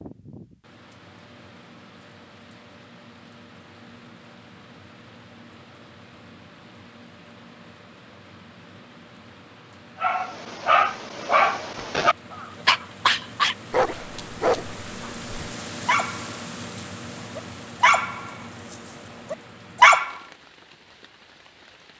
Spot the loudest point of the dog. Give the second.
20 s.